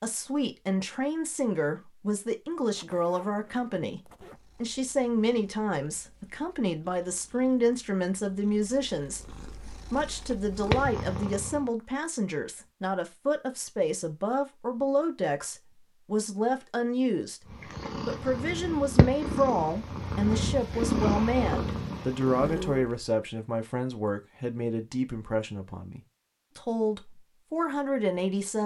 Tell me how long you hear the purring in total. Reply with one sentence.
You can hear the purring for 13 seconds altogether.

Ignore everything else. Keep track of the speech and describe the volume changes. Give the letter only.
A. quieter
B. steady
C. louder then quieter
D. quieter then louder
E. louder
B.